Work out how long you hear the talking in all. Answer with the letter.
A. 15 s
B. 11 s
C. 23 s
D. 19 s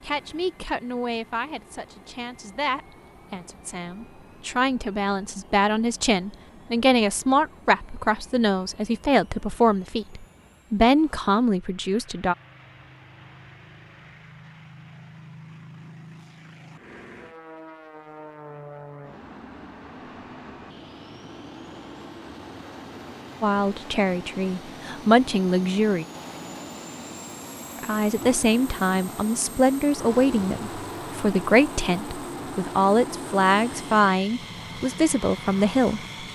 C.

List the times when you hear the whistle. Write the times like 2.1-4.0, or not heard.
not heard.